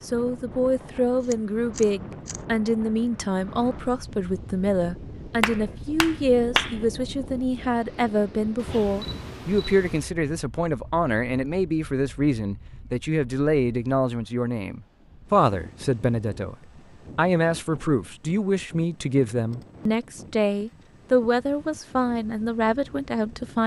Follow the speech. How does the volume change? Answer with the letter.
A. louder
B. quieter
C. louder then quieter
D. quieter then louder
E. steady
E.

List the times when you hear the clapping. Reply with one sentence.
You can hear the clapping from 5.4 to 6.8 s.